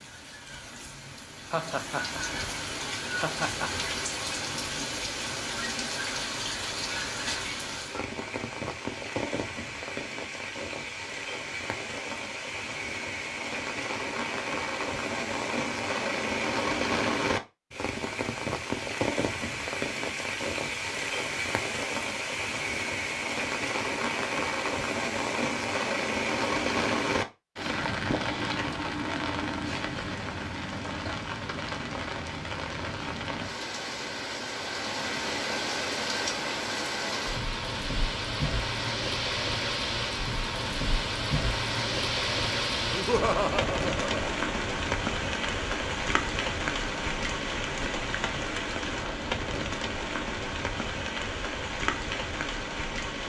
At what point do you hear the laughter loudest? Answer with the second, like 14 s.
43 s.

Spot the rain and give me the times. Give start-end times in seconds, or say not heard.
0.0-53.2.